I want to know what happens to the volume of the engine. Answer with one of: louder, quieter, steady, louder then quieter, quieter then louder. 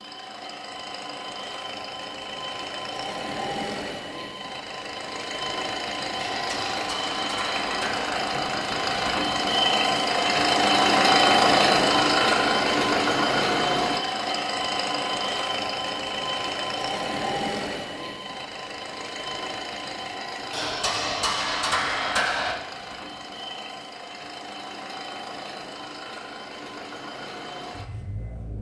louder then quieter.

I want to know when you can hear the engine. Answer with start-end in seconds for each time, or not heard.
0.0-28.5.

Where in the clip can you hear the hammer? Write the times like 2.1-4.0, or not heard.
6.2-8.2, 20.5-22.6.